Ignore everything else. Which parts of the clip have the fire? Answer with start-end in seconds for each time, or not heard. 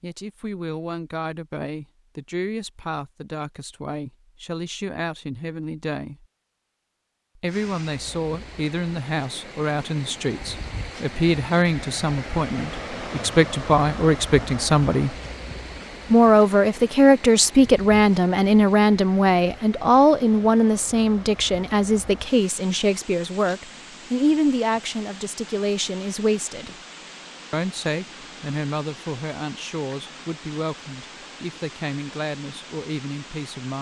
not heard.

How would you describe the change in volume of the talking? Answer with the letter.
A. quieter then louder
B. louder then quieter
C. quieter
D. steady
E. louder
B.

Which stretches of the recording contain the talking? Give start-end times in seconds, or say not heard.
0.0-6.2, 7.3-15.2, 16.1-26.8, 27.5-33.7.